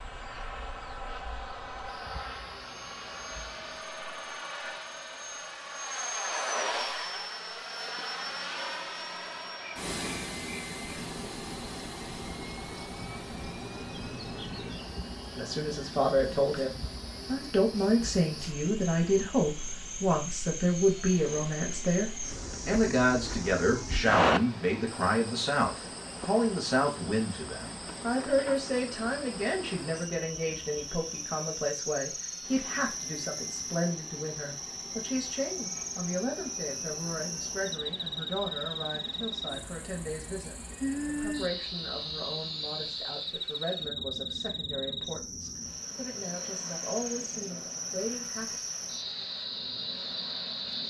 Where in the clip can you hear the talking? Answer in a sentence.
You can hear the talking from 15.3 to 48.5 s.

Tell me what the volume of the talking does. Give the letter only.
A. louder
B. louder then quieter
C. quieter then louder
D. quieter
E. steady
D.